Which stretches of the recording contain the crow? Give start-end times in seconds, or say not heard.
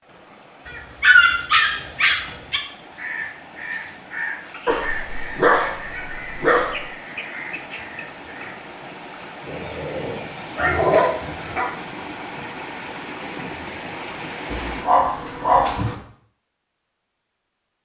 2.9-8.6.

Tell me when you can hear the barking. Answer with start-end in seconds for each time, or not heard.
0.7-2.6, 4.7-6.8, 9.4-11.7, 14.5-15.9.